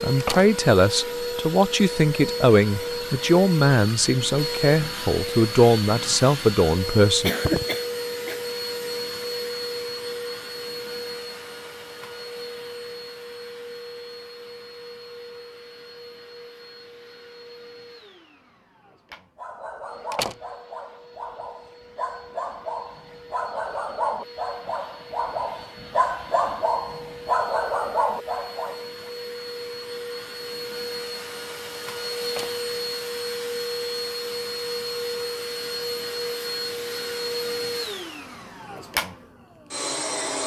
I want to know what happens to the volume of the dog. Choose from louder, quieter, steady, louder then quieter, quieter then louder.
louder.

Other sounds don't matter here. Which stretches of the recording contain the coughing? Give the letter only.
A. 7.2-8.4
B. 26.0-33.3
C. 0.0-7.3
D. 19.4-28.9
A.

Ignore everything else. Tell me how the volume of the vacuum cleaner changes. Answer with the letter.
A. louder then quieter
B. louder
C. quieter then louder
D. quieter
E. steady
C.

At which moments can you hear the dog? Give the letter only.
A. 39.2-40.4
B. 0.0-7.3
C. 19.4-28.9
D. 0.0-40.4
C.